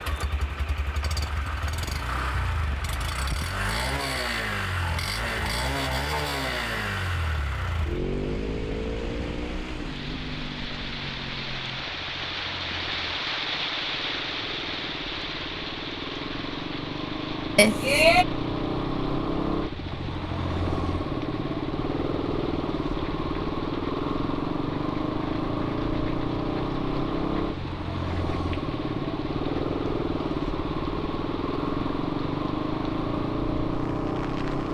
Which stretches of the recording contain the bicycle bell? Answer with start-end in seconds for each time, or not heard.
17.6-18.2.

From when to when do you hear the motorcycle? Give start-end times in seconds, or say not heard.
0.0-34.6.